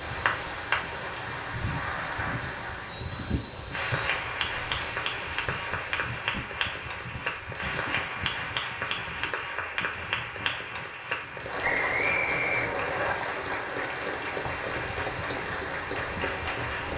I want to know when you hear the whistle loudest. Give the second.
12 s.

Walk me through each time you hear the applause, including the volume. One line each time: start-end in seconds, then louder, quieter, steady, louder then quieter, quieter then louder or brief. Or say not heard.
0.0-16.9 steady.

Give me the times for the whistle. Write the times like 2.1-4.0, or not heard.
2.9-4.2, 11.6-13.2.